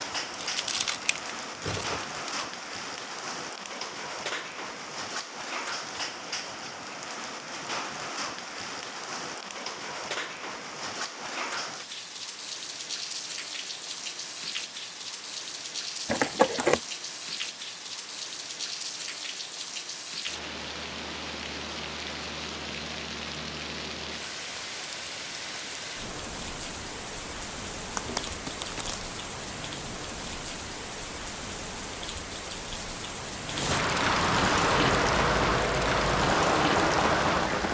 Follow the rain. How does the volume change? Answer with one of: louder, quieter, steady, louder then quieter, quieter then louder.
louder.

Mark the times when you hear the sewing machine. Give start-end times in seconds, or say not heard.
34.7-37.6.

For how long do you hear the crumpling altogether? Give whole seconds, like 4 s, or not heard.
4 s.